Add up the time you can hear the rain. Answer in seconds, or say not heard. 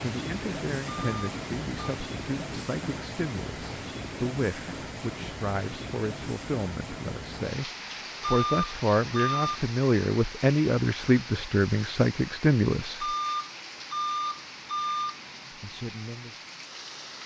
17 s.